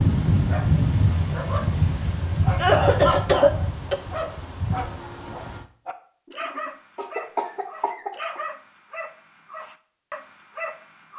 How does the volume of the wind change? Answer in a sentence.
The loudness of the wind goes down.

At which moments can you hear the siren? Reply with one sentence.
You can't hear the siren here.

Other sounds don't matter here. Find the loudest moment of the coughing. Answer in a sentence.
The volume of the coughing peaks at 3 seconds.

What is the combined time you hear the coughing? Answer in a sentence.
You can hear the coughing for 3 seconds altogether.